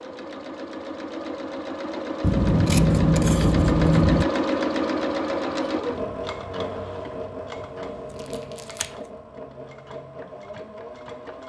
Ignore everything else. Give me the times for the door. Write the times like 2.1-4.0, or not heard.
not heard.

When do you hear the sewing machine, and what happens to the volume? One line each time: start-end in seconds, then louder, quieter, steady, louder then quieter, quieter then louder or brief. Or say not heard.
0.0-11.4 louder then quieter.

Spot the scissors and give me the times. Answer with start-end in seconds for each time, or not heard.
2.2-4.2.